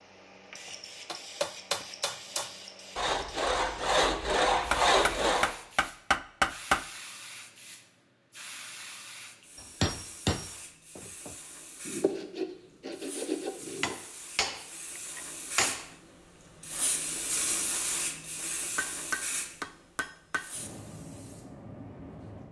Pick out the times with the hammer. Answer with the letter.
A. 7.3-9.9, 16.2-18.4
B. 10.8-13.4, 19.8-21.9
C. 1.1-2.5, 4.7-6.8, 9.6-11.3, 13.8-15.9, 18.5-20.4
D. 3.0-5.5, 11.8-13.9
C.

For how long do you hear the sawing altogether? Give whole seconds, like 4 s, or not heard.
5 s.